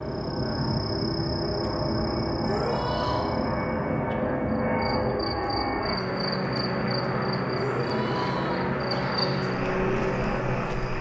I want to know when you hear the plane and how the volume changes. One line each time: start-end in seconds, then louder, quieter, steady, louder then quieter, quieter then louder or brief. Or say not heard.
0.0-10.9 steady.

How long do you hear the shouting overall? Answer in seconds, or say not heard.
2 s.